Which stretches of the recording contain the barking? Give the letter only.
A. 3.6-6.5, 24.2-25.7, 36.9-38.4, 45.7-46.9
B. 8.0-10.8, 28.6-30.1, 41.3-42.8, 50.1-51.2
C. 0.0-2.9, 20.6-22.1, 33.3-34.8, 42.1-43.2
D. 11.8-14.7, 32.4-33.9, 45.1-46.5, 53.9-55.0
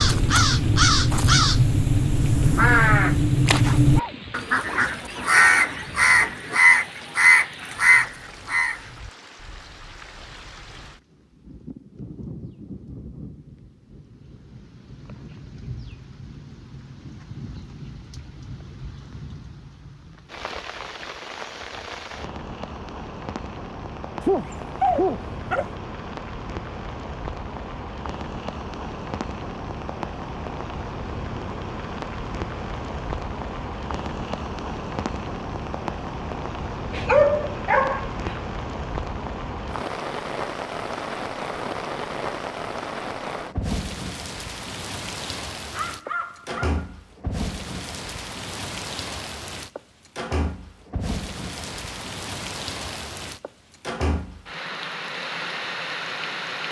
A.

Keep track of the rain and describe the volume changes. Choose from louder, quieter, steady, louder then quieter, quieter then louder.
louder.